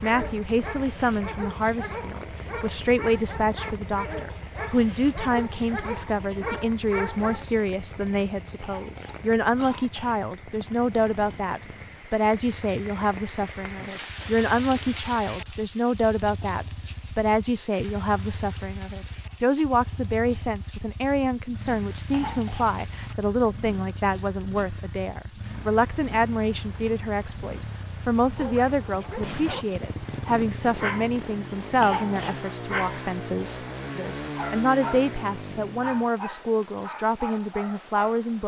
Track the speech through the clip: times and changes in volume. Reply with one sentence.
The speech can be heard from 0.0 to 38.4 s, at a steady volume.